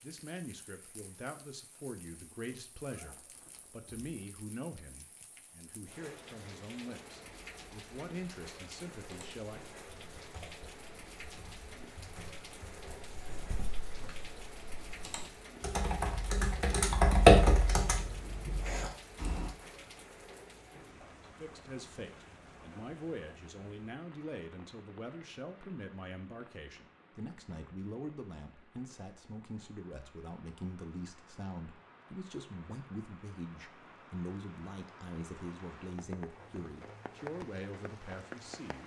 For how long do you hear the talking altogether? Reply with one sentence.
You can hear the talking for 27 seconds altogether.